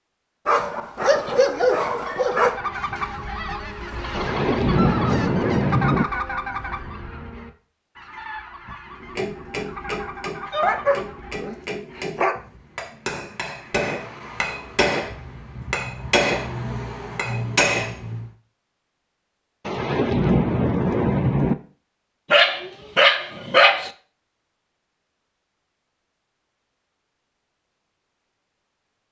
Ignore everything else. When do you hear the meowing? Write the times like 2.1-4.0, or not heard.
not heard.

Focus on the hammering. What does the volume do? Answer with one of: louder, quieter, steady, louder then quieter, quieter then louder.
louder.